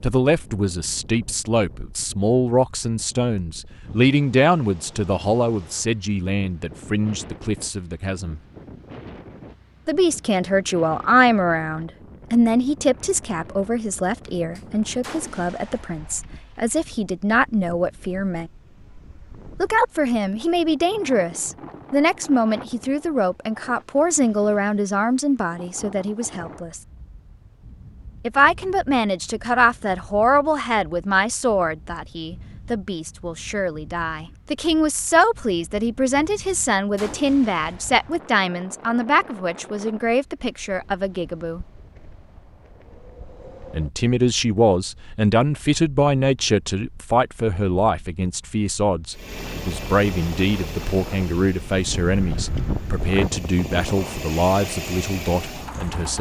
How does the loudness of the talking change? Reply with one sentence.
The volume of the talking stays about the same.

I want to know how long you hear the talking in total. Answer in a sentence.
The talking can be heard for 50 seconds in total.